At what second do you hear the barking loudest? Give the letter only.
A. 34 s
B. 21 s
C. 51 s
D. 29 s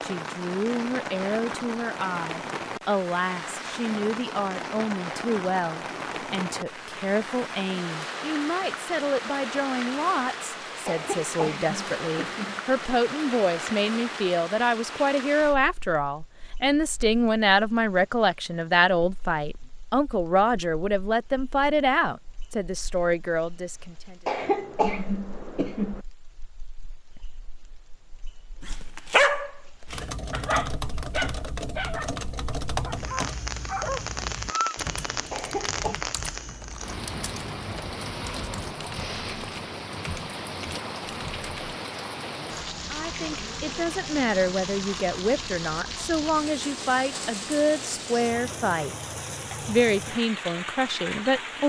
D.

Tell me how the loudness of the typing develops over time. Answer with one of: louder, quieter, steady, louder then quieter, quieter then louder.
quieter.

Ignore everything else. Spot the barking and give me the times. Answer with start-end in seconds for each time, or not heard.
28.6-34.8.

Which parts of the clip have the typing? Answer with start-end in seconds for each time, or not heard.
29.9-41.8.